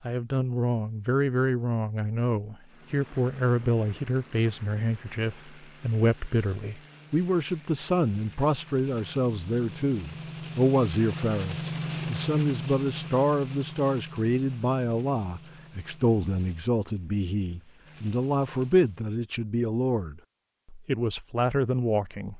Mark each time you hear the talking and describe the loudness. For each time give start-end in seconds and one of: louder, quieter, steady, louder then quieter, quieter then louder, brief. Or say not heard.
0.0-22.3 steady.